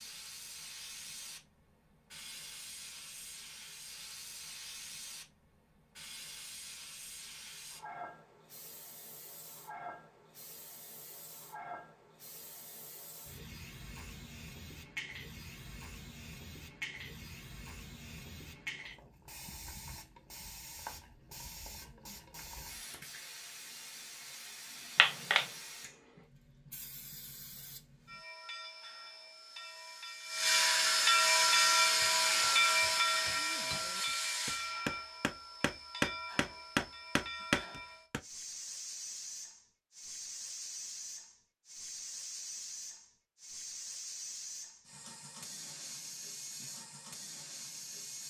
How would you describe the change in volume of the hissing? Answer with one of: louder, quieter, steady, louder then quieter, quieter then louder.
louder then quieter.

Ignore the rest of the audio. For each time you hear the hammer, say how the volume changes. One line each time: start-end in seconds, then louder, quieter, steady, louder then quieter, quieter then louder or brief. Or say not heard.
31.4-38.2 louder.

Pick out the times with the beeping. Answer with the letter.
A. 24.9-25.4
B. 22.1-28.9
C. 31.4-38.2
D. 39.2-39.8
A.